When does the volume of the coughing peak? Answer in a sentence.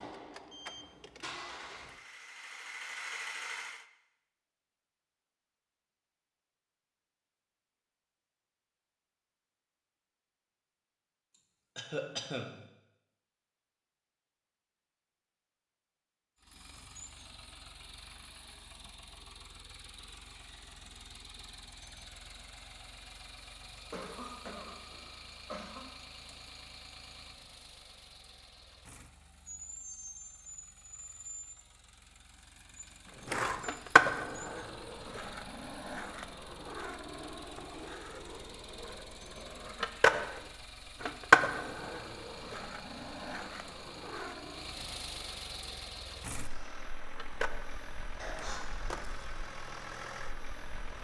The volume of the coughing peaks at 12 seconds.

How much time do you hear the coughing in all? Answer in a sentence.
The coughing can be heard for 4 seconds in total.